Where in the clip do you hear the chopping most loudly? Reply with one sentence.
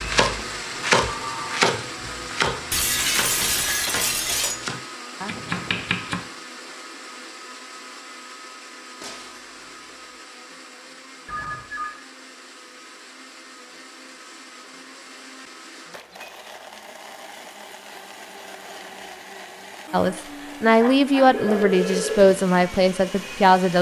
The volume of the chopping peaks at 1 second.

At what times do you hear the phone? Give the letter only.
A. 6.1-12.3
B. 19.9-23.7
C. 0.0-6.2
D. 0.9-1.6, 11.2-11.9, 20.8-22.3
D.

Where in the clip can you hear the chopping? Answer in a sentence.
You can hear the chopping from 0.0 to 6.2 s.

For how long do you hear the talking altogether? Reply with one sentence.
You can hear the talking for 4 seconds altogether.